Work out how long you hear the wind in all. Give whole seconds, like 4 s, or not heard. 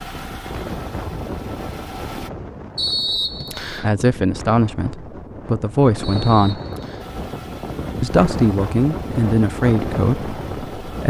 11 s.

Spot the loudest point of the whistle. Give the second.
3 s.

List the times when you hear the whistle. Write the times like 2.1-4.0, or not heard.
2.8-3.9, 6.0-7.1.